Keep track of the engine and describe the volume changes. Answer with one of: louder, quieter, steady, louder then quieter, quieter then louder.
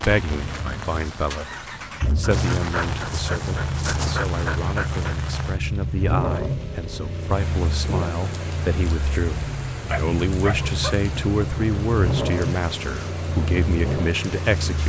steady.